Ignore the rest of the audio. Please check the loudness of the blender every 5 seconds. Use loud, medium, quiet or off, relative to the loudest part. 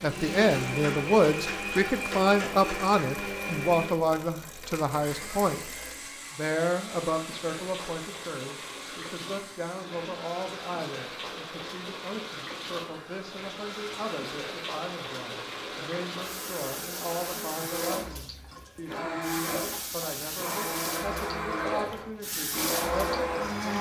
loud, quiet, quiet, medium, loud.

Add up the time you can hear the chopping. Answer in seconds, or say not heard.
not heard.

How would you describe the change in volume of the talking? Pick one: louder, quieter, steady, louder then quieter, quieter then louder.
quieter.